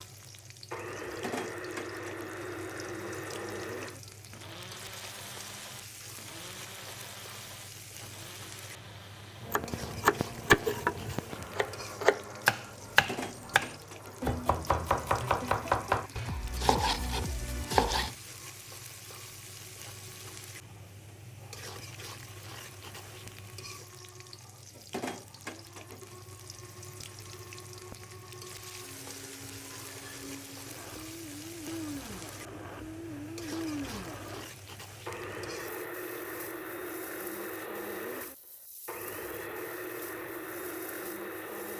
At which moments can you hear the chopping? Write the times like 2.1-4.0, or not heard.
9.4-18.1.